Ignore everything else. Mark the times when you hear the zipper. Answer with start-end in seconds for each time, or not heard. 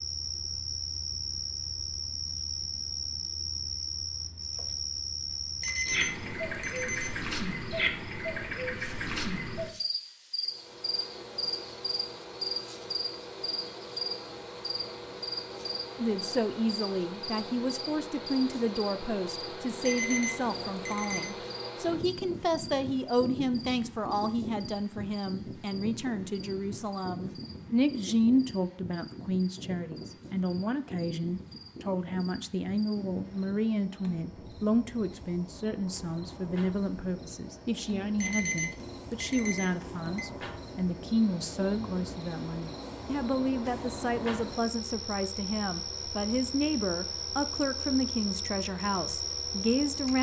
not heard.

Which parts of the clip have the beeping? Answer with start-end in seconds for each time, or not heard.
5.6-7.2, 19.8-21.3, 38.1-40.2.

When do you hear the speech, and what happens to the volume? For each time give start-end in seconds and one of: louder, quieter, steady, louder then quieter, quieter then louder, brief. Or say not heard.
15.9-50.1 steady.